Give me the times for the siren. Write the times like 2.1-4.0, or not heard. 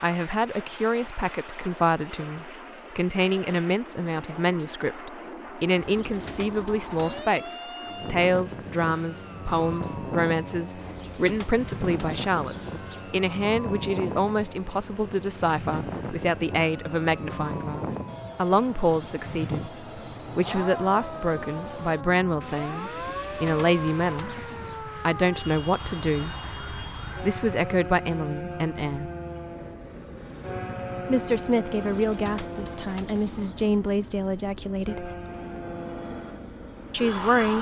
7.0-33.0, 34.9-37.5.